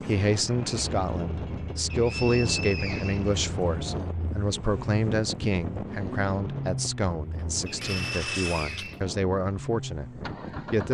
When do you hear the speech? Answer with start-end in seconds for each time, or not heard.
0.0-10.9.